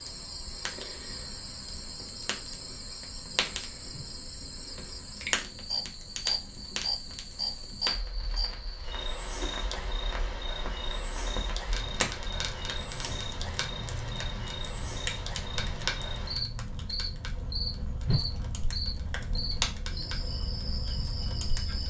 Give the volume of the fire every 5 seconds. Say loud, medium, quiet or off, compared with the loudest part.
medium, loud, loud, loud, loud.